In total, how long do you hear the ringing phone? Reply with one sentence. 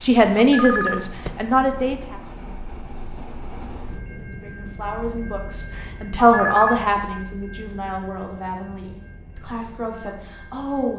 You can hear the ringing phone for 2 seconds altogether.